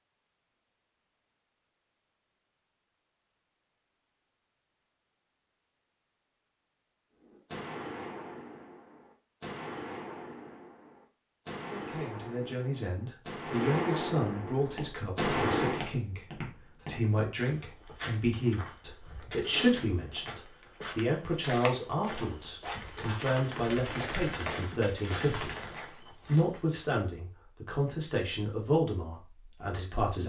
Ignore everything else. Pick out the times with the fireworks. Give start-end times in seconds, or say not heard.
7.2-15.8, 22.8-25.8.